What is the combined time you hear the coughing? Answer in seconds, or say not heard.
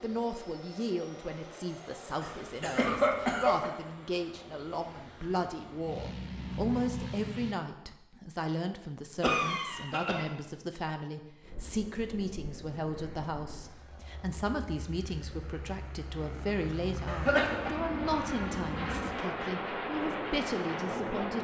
3 s.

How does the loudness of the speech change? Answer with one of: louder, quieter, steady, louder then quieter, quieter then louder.
steady.